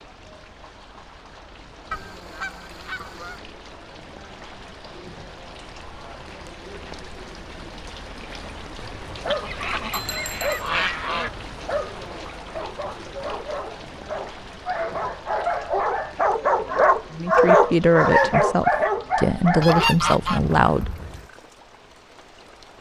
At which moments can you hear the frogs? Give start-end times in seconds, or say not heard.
not heard.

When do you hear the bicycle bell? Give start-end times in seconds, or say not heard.
9.9-10.7.